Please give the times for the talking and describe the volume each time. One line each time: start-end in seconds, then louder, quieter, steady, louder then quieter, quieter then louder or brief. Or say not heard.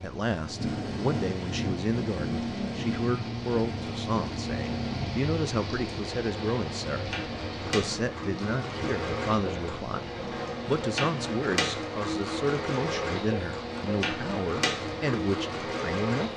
0.0-16.3 steady.